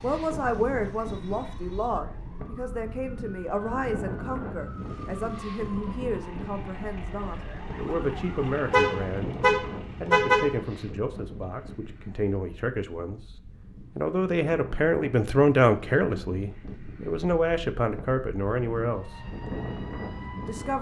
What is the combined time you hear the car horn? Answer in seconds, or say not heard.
2 s.